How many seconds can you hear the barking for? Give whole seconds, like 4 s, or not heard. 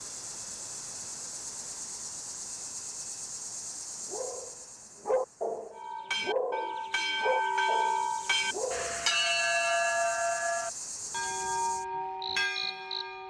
5 s.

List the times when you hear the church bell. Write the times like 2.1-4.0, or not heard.
5.7-13.2.